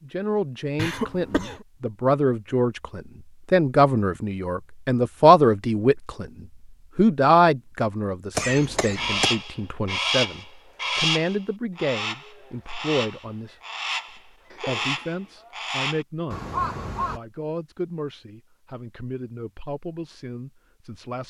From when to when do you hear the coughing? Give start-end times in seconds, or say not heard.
0.8-1.6, 8.3-9.3, 14.5-15.3.